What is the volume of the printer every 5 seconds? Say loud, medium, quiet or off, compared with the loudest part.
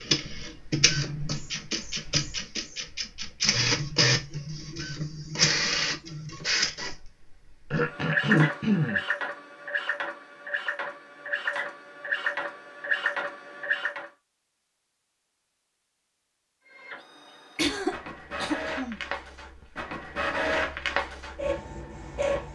loud, loud, loud, medium, loud.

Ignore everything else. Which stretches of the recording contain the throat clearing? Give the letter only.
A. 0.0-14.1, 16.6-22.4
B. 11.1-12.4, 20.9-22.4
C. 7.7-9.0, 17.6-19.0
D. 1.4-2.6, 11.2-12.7
C.